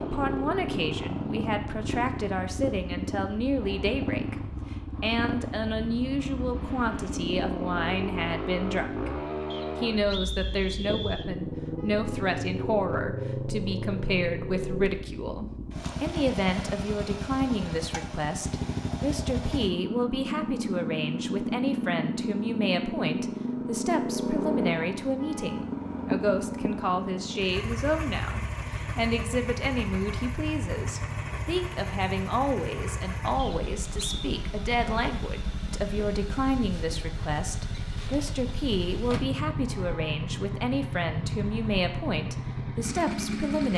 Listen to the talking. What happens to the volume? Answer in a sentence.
The volume of the talking stays about the same.